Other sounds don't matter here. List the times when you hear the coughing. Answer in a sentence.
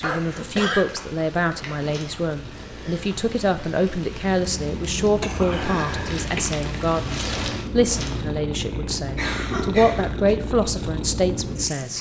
The coughing can be heard from 0.0 to 0.8 s, from 4.5 to 6.5 s and from 9.2 to 10.3 s.